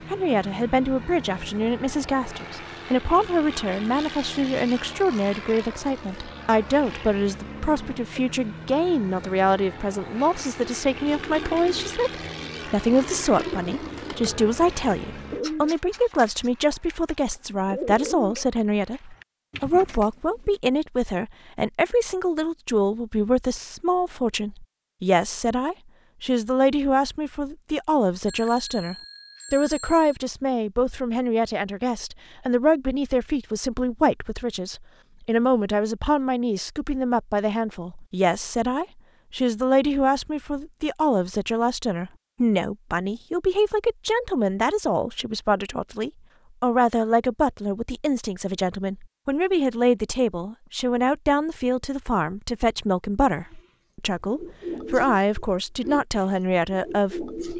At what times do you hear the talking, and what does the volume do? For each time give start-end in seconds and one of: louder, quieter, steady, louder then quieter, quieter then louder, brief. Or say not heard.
0.1-57.4 steady.